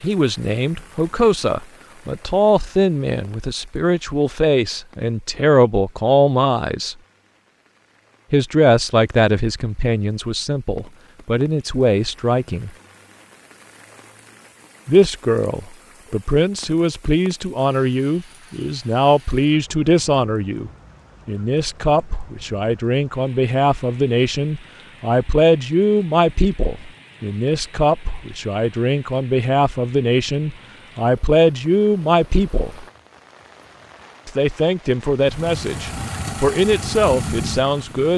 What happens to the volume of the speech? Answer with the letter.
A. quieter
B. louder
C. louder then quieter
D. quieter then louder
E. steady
E.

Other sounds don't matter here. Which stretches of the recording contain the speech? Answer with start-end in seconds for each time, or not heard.
0.0-7.0, 8.3-12.7, 14.8-32.9, 34.2-38.1.